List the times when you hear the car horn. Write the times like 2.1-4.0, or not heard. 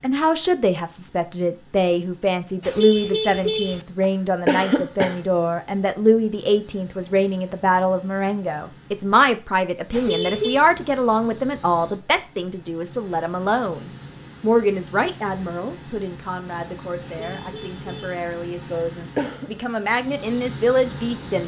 2.6-3.9, 9.9-10.7, 17.1-18.2.